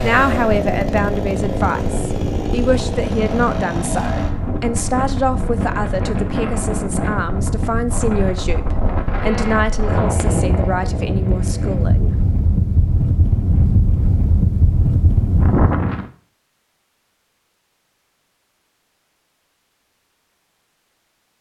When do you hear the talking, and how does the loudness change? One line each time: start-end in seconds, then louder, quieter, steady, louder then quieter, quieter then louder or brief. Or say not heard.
0.0-12.2 steady.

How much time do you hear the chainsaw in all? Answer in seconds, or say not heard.
4 s.